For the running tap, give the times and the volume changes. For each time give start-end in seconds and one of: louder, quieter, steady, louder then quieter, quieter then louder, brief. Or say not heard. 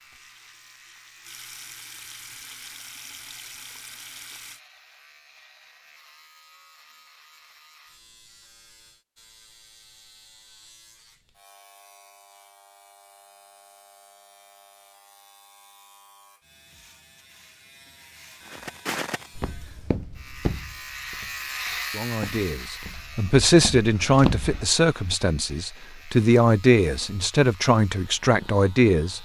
0.0-4.6 louder.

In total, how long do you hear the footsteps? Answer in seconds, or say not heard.
6 s.